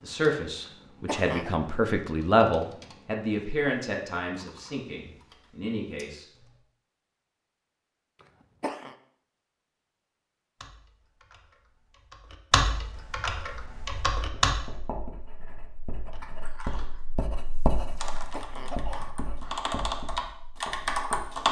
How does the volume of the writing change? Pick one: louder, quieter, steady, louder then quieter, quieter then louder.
louder then quieter.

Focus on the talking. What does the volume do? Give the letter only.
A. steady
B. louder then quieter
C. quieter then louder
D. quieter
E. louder
B.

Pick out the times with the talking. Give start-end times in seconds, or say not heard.
0.0-6.2.